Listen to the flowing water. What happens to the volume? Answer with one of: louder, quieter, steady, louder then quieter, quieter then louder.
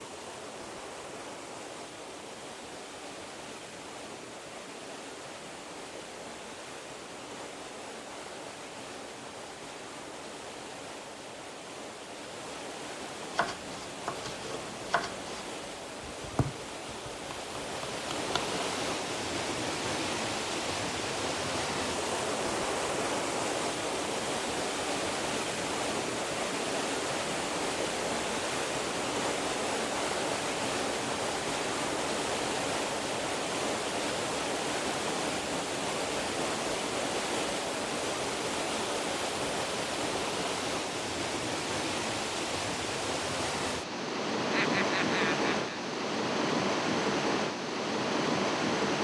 louder.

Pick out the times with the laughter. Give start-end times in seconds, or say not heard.
44.5-45.8.